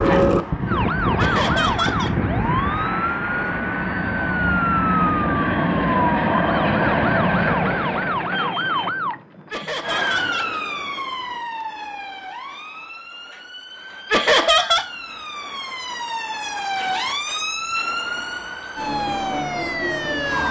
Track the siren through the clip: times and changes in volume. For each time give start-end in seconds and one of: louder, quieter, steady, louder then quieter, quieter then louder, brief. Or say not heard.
0.0-20.4 quieter then louder.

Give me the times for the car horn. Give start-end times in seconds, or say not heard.
not heard.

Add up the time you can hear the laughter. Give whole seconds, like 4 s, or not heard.
3 s.